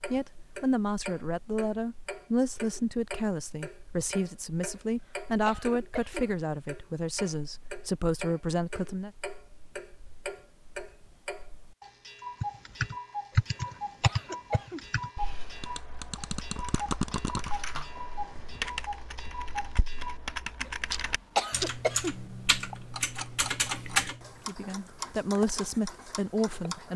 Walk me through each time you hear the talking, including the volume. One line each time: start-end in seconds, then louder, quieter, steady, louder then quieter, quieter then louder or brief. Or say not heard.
0.1-9.1 steady
24.4-26.9 brief.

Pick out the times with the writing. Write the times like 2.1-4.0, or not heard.
not heard.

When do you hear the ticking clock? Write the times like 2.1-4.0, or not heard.
0.0-26.9.